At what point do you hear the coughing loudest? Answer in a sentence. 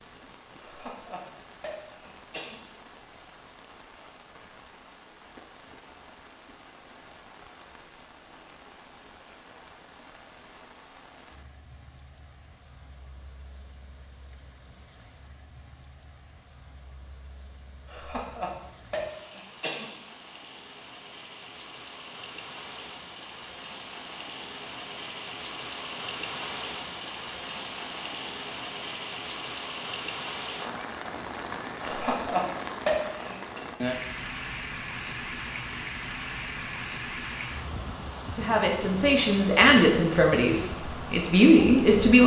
The volume of the coughing peaks at 33 seconds.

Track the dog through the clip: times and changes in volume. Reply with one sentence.
The dog can't be heard in this clip.